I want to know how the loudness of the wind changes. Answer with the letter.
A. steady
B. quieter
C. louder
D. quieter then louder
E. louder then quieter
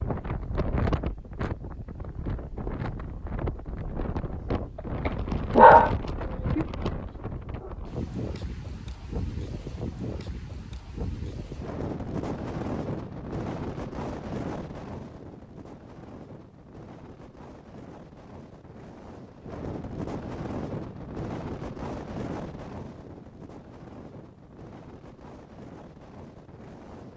B.